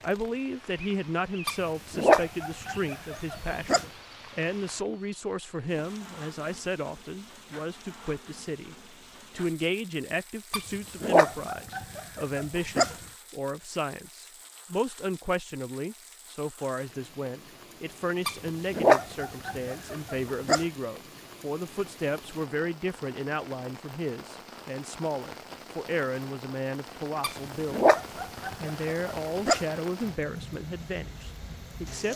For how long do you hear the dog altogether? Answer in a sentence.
The dog can be heard for 10 seconds in total.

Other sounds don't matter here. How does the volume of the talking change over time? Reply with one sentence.
The loudness of the talking stays about the same.